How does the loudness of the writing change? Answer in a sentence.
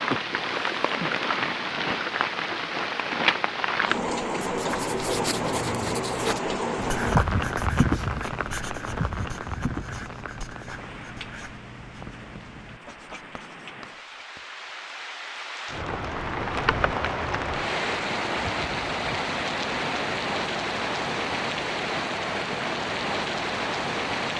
The loudness of the writing goes down.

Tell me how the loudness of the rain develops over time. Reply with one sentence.
The volume of the rain goes down, then up.